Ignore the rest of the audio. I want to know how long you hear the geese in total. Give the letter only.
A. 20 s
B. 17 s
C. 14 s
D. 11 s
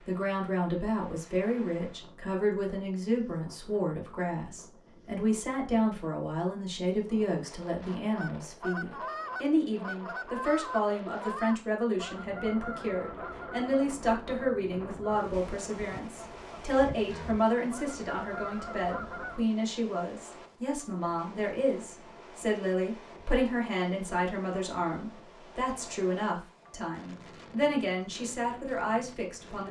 D.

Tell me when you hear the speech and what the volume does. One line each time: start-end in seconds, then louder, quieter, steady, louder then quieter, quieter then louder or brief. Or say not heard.
0.1-29.6 steady.